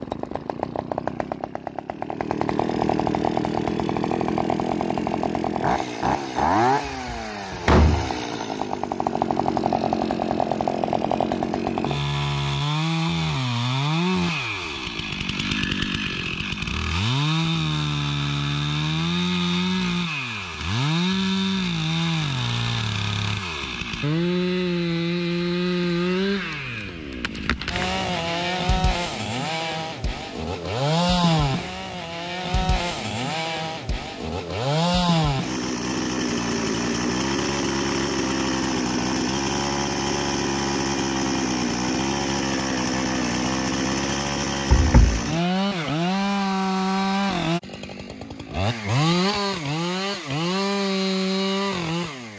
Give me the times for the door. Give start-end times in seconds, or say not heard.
6.8-8.1, 44.7-45.2.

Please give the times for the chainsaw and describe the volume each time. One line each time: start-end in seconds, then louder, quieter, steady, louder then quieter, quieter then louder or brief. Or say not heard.
0.0-52.3 steady.